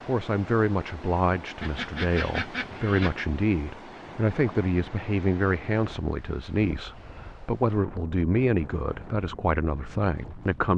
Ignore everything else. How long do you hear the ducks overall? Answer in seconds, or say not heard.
2 s.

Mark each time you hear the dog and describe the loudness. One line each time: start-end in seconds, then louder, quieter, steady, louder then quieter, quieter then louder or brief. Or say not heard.
not heard.